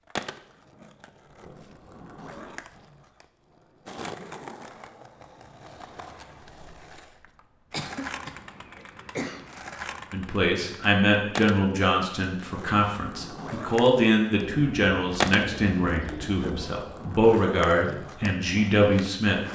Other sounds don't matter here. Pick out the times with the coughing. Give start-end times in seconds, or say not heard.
7.7-9.5.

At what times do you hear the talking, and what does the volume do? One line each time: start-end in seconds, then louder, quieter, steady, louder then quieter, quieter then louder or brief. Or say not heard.
10.1-19.4 steady.